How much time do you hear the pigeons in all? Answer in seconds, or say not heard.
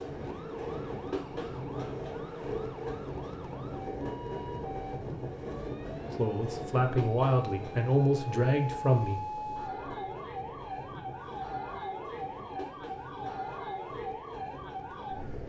not heard.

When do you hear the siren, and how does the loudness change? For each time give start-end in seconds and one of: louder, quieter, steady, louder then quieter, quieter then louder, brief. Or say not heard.
0.1-15.4 louder.